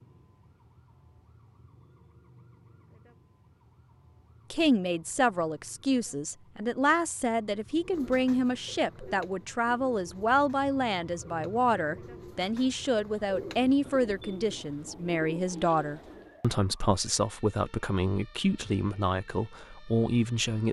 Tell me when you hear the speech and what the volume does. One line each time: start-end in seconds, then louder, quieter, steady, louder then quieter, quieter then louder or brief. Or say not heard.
4.5-20.6 steady.